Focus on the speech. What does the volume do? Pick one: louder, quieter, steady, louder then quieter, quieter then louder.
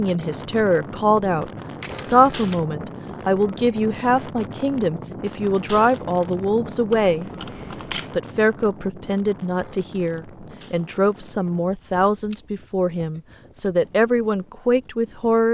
steady.